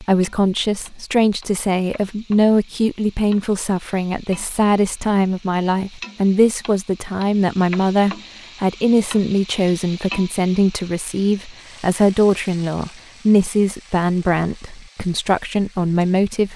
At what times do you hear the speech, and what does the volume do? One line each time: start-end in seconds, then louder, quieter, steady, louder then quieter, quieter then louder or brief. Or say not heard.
0.0-16.5 steady.